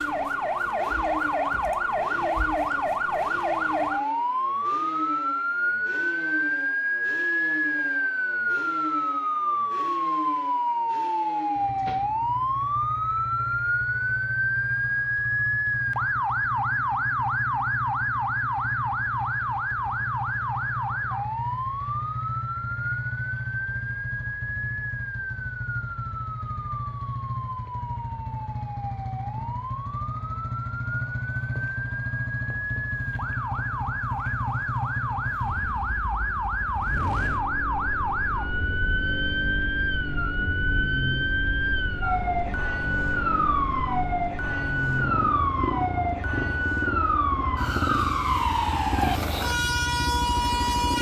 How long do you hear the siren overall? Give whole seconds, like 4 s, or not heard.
51 s.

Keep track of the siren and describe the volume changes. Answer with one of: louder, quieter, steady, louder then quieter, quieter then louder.
quieter then louder.